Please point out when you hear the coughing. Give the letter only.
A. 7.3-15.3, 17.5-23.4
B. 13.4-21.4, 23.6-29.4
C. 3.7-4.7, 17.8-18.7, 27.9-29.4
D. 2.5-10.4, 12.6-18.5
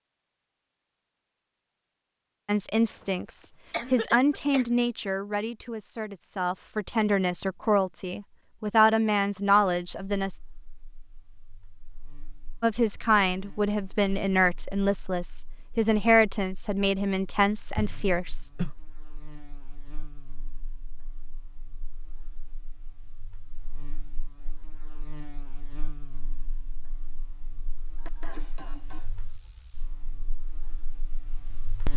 C.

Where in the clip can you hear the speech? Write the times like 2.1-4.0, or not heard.
2.5-10.4, 12.6-18.5.